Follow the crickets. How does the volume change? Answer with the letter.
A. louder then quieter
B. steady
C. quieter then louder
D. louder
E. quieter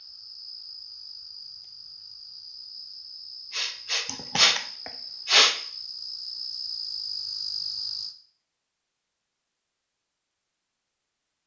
D.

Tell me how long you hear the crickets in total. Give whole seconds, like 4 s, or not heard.
8 s.